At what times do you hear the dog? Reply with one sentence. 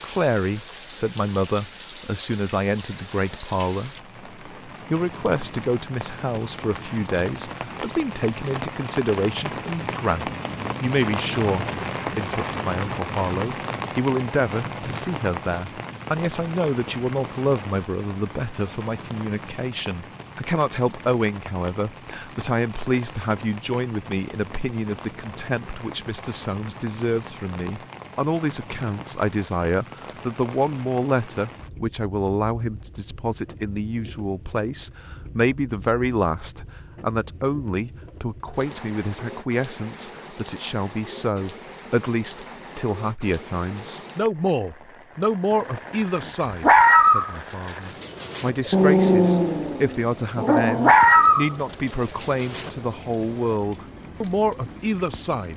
The dog can be heard from 46.6 to 52.7 s.